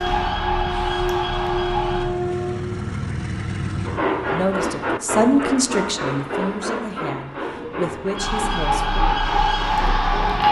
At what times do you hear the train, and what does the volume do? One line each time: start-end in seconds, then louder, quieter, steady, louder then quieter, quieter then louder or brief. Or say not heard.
0.0-10.4 quieter.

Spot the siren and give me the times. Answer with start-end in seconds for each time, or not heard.
0.0-2.1, 8.2-10.4.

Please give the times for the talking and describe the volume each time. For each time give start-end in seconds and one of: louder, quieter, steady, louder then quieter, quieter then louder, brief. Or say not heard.
4.3-9.0 quieter then louder.